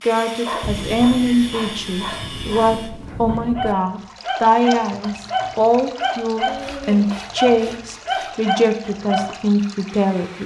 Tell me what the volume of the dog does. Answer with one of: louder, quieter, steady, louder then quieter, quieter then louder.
louder.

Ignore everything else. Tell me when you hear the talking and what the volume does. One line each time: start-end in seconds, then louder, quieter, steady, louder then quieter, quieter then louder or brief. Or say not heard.
0.1-10.4 steady.